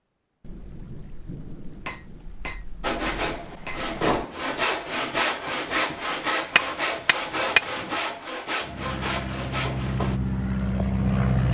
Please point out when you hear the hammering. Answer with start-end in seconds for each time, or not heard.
1.9-3.9, 6.5-7.9.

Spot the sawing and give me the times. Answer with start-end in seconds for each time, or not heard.
2.8-10.2.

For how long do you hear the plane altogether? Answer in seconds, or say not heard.
3 s.